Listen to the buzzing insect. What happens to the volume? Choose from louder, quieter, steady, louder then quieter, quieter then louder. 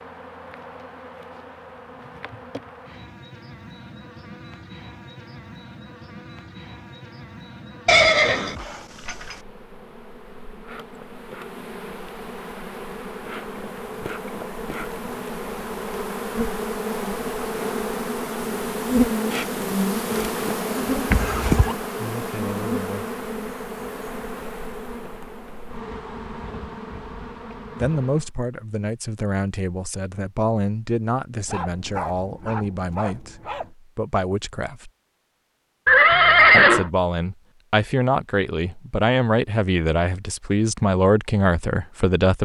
louder then quieter.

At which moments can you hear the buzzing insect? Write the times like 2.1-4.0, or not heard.
0.0-28.3.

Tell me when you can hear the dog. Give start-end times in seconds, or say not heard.
31.4-33.7.